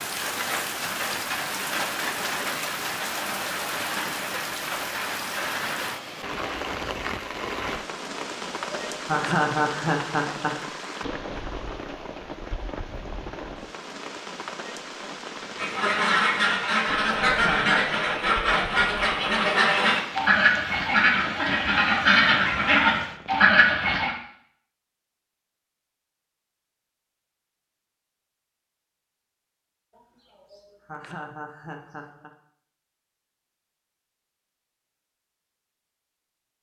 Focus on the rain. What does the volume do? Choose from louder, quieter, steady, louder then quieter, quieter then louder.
quieter.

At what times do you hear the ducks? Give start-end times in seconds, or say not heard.
15.6-24.1.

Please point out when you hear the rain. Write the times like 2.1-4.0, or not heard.
0.0-23.5.